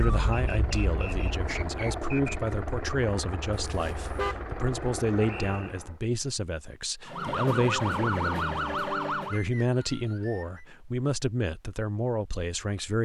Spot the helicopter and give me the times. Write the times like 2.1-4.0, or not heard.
0.0-6.0.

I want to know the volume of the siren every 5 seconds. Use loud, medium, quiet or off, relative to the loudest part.
medium, loud, off.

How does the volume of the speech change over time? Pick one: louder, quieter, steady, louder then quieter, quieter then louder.
steady.